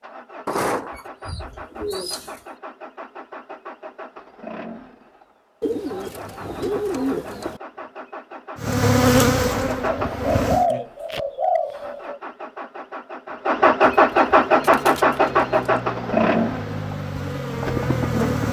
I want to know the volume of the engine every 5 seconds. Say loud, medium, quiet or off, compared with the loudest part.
quiet, quiet, loud, loud.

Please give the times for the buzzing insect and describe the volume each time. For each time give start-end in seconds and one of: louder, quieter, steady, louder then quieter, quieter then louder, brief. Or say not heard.
8.6-10.7 brief
14.3-18.4 louder.